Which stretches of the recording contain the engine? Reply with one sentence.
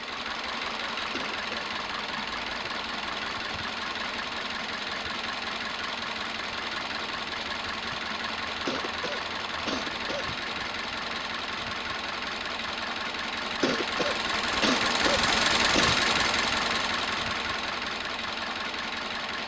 The engine can be heard from 0.0 to 19.4 s.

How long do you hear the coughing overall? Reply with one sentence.
You can hear the coughing for 5 seconds altogether.